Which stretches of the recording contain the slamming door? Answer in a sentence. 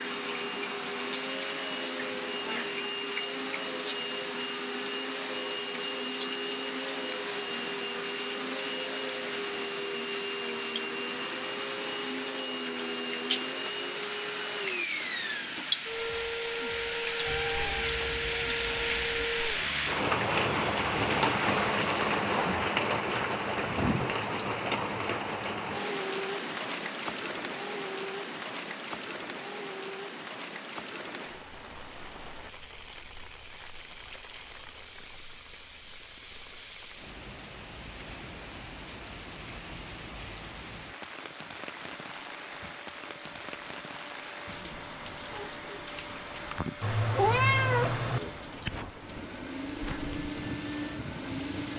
You can't hear the slamming door here.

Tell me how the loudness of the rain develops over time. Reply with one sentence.
The volume of the rain goes up, then down.